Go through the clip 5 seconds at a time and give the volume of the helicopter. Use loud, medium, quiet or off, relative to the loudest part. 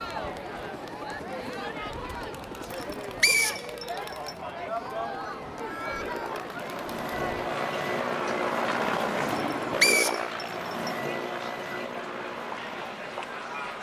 quiet, loud, loud.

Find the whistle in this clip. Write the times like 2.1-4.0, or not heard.
2.7-4.3, 9.5-10.9.